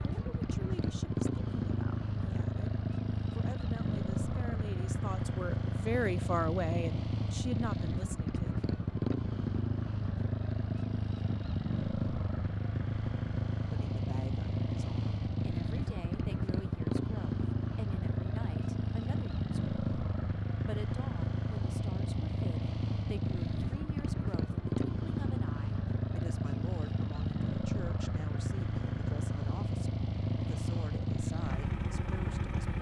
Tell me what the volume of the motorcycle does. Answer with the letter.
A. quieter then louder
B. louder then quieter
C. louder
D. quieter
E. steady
E.